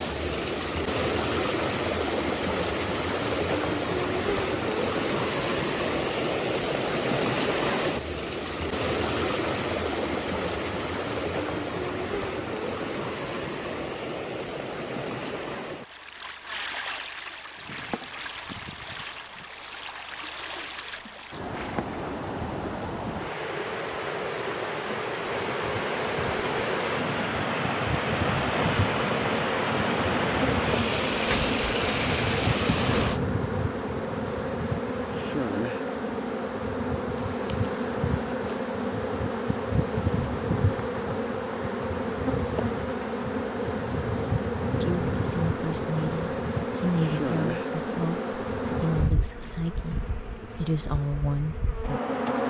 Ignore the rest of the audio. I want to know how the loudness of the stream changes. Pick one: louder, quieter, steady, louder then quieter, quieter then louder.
quieter then louder.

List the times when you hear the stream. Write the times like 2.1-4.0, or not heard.
0.0-33.2.